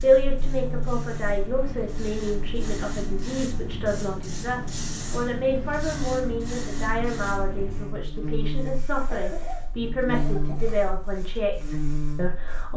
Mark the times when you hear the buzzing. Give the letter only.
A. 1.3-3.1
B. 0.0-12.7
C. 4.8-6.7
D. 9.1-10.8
B.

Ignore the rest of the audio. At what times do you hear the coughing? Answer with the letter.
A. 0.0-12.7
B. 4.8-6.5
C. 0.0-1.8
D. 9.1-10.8
D.